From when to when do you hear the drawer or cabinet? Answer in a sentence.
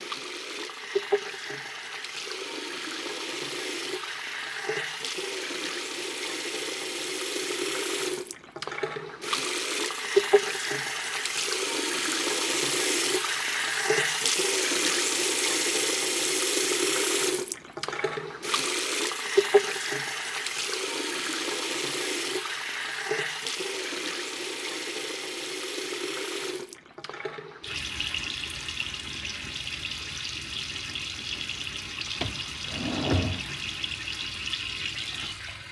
The drawer or cabinet can be heard from 32.2 to 33.6 s.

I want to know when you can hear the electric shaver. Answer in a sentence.
You can't hear the electric shaver here.